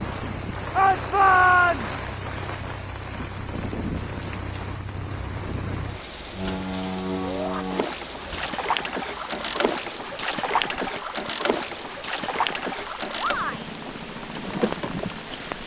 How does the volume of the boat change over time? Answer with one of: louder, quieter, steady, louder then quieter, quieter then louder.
louder.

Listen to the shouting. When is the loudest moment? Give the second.
1 s.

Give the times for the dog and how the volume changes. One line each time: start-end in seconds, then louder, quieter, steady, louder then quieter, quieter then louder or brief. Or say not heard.
not heard.